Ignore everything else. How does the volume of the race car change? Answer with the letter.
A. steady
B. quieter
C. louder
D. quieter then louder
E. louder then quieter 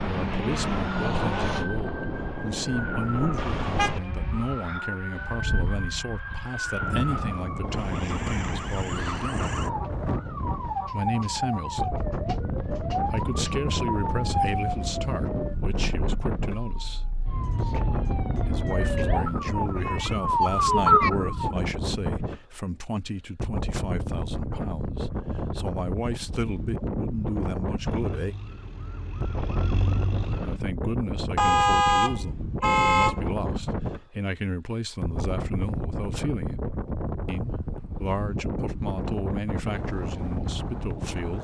B.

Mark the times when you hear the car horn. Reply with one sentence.
The car horn can be heard from 3.4 to 4.0 s and from 31.4 to 33.3 s.